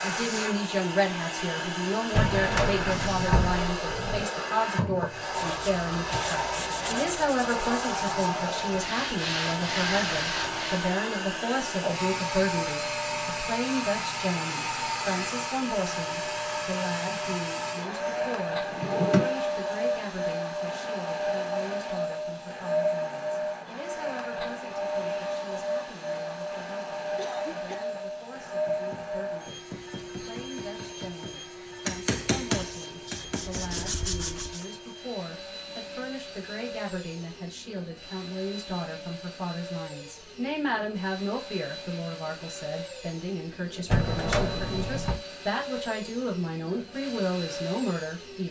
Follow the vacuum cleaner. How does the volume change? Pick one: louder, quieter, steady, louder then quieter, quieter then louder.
quieter.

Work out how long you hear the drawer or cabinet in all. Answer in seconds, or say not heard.
4 s.